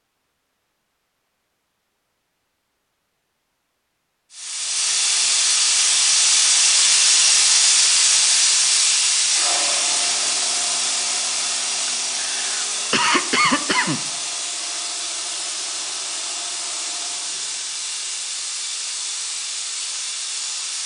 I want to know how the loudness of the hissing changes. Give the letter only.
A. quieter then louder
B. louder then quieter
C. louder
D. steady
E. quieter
E.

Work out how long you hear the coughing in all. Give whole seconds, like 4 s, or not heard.
2 s.